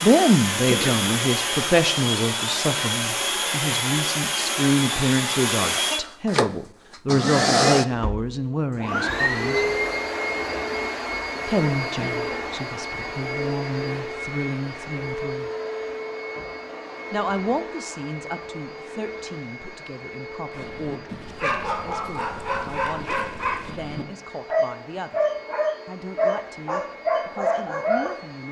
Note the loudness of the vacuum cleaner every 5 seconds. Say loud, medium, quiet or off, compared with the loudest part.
loud, loud, medium, medium, quiet, quiet.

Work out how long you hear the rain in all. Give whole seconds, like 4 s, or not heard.
not heard.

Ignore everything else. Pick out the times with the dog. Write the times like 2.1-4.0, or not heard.
20.5-28.2.